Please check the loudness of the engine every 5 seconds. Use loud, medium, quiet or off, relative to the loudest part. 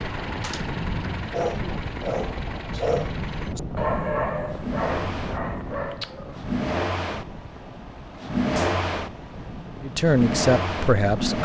medium, loud, loud.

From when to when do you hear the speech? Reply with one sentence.
The speech can be heard from 9.8 to 11.4 s.